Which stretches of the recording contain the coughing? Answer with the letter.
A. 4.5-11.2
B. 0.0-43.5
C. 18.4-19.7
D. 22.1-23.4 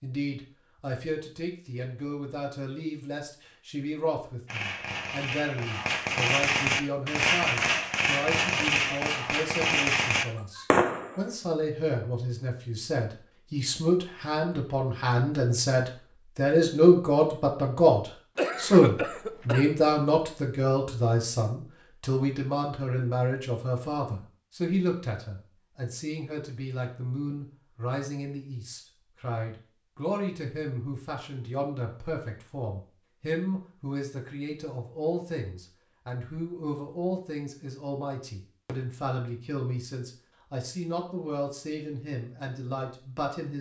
C.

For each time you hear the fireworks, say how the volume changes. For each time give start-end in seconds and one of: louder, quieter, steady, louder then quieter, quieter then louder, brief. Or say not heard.
4.5-11.2 louder.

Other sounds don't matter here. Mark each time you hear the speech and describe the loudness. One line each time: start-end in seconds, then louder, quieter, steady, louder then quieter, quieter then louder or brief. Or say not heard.
0.0-43.5 louder then quieter.